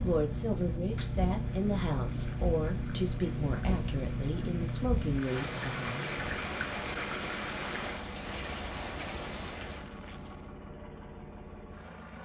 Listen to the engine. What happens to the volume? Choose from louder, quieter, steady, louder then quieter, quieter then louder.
quieter.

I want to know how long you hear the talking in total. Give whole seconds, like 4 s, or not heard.
6 s.